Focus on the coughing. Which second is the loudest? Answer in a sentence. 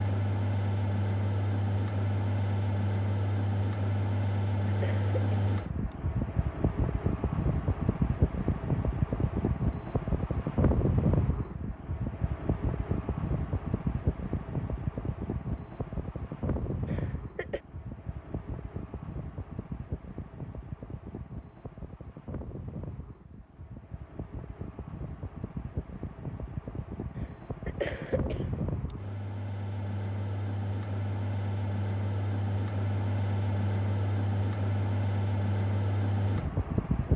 The volume of the coughing peaks at 28 seconds.